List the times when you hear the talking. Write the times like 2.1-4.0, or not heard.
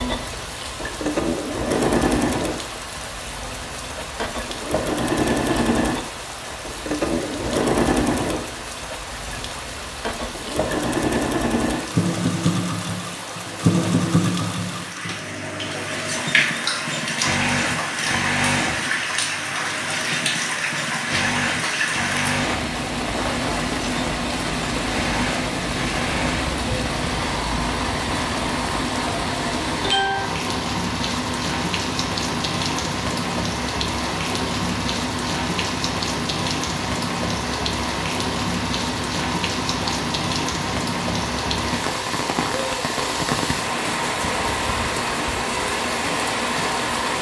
not heard.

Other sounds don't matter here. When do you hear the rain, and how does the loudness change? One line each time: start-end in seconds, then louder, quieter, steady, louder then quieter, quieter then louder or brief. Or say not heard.
0.0-47.1 louder.